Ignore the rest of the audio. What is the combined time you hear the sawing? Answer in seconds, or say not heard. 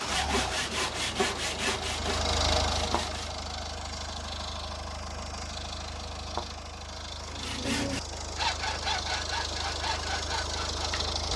7 s.